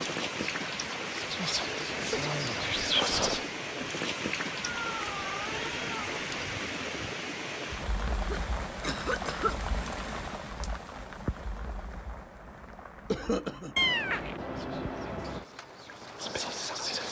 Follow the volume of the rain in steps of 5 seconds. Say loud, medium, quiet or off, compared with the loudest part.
loud, loud, medium, medium.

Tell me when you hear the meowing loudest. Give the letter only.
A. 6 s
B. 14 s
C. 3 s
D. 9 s
B.